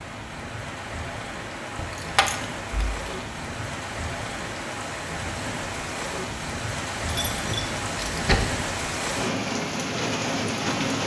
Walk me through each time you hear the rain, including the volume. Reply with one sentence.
You can hear the rain from 0.0 to 11.0 s, getting louder.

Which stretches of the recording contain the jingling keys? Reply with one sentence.
The jingling keys can be heard from 1.8 to 3.0 s and from 7.0 to 8.4 s.